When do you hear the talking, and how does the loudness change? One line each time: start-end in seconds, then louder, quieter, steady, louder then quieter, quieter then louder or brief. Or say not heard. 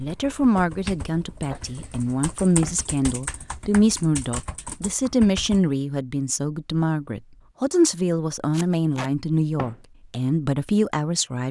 0.0-11.4 steady.